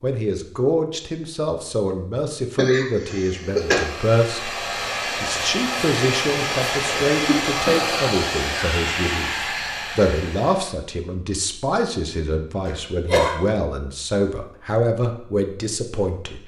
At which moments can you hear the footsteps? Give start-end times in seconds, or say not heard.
not heard.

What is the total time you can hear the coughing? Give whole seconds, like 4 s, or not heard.
3 s.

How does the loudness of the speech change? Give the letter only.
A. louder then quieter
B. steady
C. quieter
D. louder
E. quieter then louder
B.